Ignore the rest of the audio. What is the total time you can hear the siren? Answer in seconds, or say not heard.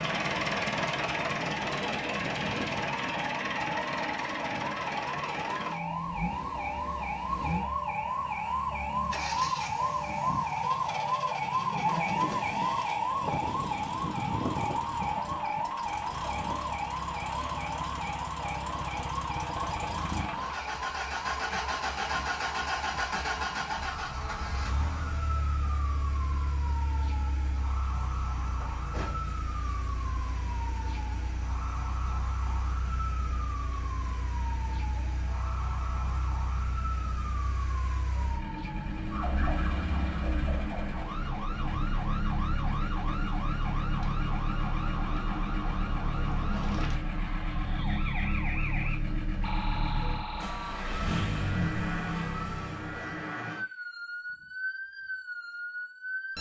56 s.